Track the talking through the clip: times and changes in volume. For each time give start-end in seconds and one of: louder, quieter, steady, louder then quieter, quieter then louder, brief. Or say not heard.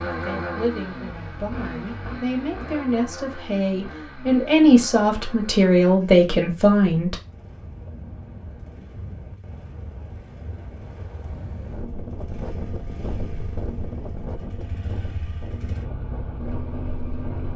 0.1-7.2 louder.